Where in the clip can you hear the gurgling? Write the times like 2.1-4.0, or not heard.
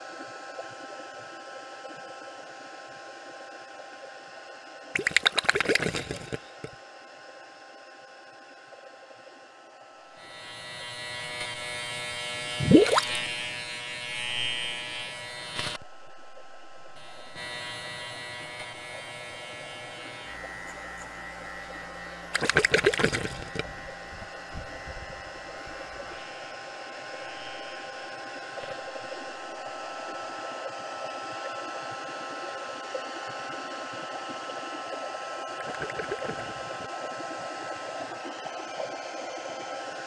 5.0-6.7, 12.6-13.2, 22.3-23.6, 35.5-36.9.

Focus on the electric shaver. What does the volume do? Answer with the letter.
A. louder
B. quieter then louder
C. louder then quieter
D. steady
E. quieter
E.